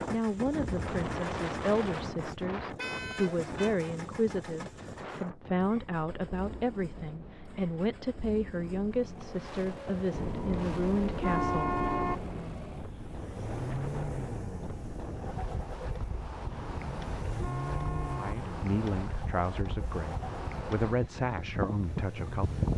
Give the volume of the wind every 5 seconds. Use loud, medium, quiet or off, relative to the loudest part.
loud, medium, medium, medium, loud.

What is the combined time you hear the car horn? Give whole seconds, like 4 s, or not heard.
5 s.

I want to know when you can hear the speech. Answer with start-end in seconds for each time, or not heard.
0.1-11.7, 18.1-22.6.